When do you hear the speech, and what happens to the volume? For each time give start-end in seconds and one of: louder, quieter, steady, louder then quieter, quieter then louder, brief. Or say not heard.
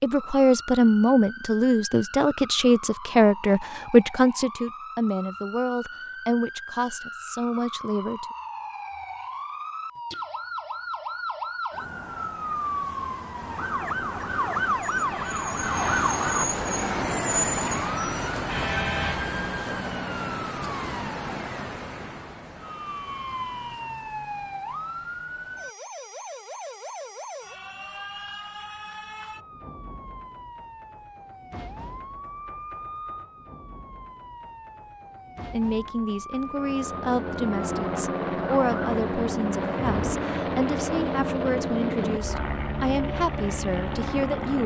0.0-8.2 quieter
35.5-44.6 steady.